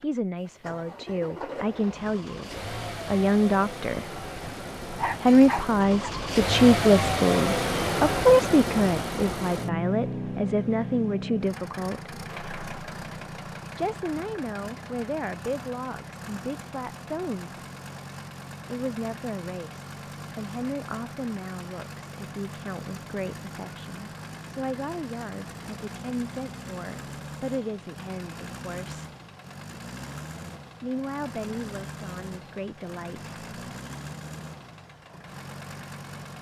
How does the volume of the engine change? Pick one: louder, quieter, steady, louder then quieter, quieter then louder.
quieter.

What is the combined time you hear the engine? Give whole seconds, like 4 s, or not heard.
36 s.